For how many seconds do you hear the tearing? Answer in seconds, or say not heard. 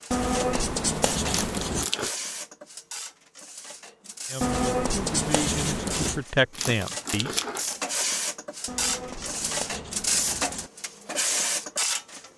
2 s.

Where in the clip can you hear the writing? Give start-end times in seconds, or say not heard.
0.1-1.9, 4.4-6.2, 8.7-10.7.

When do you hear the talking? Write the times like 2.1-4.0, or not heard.
4.3-7.3.